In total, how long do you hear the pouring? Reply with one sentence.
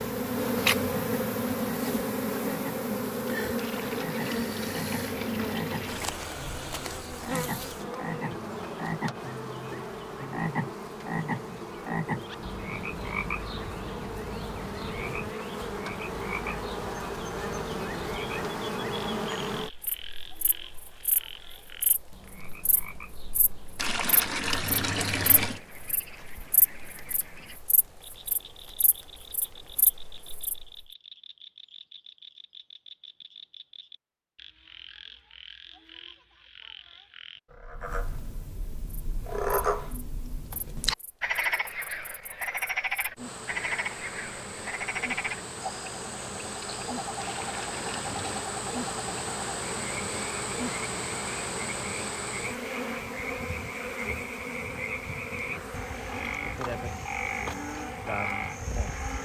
You can hear the pouring for 6 seconds altogether.